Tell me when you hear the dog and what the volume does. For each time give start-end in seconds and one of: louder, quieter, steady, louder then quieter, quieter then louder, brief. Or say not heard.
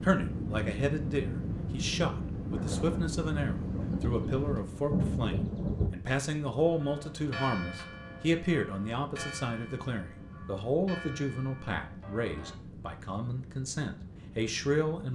not heard.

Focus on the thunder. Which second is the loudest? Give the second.
5 s.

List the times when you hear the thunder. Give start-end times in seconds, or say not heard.
2.5-5.9.